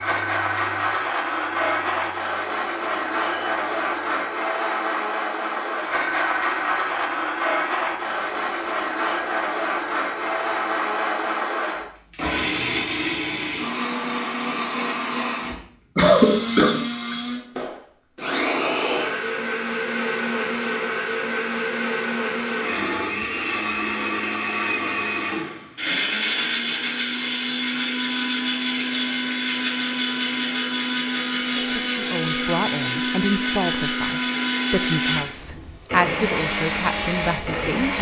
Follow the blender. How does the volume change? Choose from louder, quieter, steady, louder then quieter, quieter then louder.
steady.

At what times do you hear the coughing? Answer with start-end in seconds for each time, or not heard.
15.9-17.1.